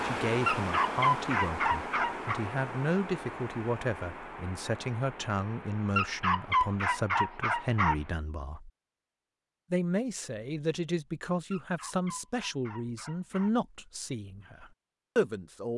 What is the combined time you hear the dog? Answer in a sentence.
You can hear the dog for 6 seconds altogether.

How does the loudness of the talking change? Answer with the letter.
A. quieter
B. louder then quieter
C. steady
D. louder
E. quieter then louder
C.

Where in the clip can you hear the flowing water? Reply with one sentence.
You can hear the flowing water from 0.0 to 8.2 s.